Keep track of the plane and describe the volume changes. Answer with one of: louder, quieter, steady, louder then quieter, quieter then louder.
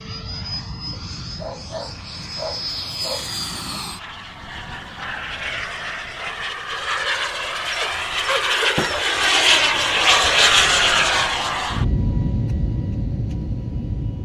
louder then quieter.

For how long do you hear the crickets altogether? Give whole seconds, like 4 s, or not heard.
not heard.